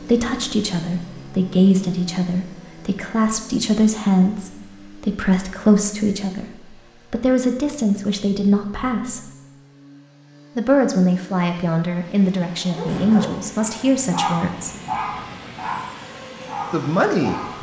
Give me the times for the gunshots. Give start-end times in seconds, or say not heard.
not heard.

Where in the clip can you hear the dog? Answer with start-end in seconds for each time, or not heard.
12.6-17.5.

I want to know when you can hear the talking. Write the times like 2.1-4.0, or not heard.
0.0-9.3, 10.6-14.7, 16.7-17.5.